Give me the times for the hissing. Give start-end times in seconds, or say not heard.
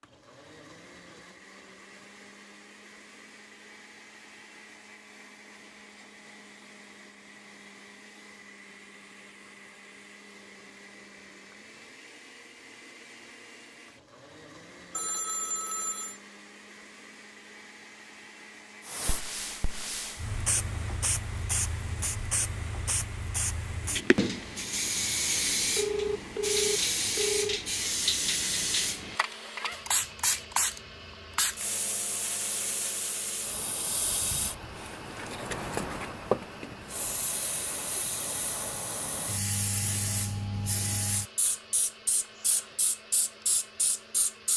18.8-44.5.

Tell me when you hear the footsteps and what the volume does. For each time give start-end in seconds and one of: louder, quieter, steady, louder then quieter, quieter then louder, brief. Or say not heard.
not heard.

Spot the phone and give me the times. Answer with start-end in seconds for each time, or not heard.
14.9-16.2, 25.8-27.6.